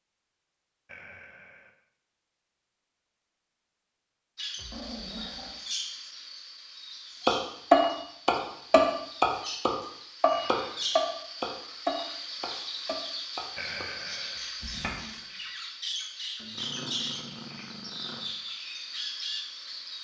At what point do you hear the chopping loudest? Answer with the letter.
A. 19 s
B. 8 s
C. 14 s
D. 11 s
B.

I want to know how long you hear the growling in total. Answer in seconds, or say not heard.
3 s.